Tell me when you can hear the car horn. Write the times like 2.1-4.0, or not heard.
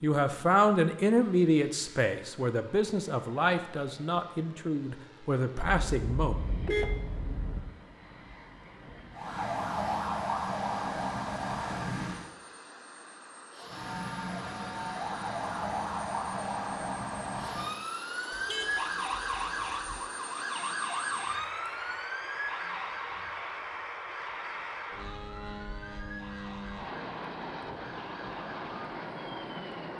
5.6-7.6, 18.3-20.0.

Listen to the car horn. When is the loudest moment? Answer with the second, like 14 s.
7 s.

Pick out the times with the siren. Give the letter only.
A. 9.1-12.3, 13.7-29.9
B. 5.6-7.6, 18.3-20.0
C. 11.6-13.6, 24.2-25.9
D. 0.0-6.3
A.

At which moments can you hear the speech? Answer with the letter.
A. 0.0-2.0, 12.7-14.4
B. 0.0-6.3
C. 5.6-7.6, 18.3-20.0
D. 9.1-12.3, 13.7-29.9
B.